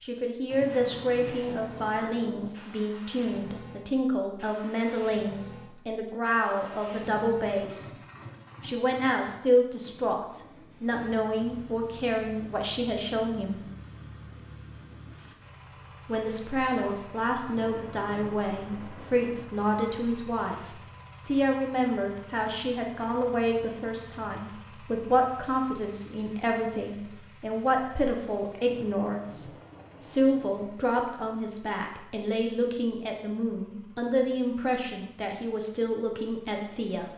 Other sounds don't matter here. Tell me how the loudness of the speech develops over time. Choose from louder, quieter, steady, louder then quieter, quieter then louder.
steady.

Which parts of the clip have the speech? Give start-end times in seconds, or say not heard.
0.0-7.9, 8.6-13.6, 16.1-37.1.